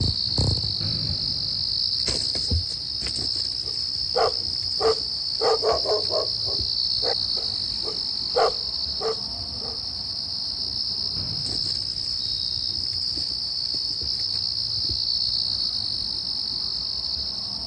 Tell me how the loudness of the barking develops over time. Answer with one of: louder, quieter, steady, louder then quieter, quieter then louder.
quieter then louder.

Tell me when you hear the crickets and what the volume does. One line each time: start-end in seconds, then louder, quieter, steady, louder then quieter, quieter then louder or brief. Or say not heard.
0.0-17.6 steady.